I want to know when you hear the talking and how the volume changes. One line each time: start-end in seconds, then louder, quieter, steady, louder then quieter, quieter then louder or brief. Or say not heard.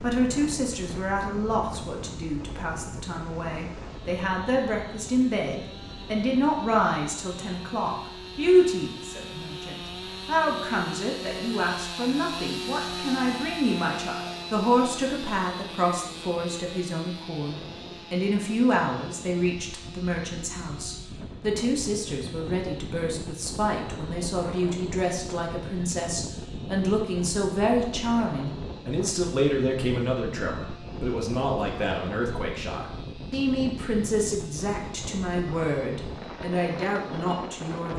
0.0-37.9 steady.